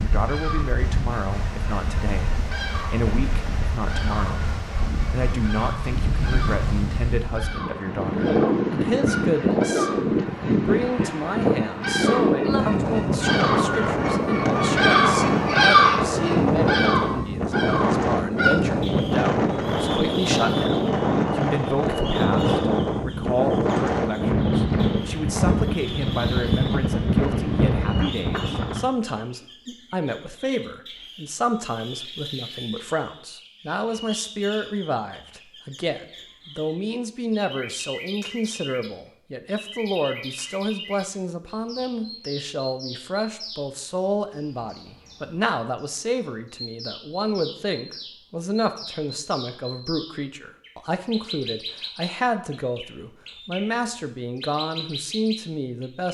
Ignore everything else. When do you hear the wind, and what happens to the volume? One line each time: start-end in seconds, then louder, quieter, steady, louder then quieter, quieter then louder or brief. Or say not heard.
0.0-28.9 louder.